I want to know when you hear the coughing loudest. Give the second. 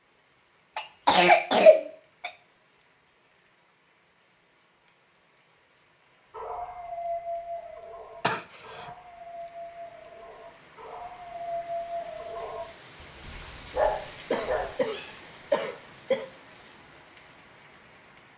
2 s.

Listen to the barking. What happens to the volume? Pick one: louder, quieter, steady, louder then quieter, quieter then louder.
quieter then louder.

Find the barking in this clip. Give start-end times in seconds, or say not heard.
6.3-14.8.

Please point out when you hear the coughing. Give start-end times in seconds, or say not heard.
0.8-2.3, 8.2-8.9, 14.3-16.2.